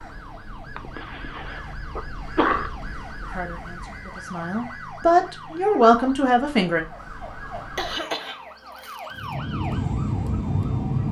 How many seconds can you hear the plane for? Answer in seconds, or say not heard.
2 s.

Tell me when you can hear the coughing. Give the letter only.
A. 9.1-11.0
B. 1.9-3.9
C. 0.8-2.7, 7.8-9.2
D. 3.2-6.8
C.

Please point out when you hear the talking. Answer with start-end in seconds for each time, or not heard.
3.2-6.8.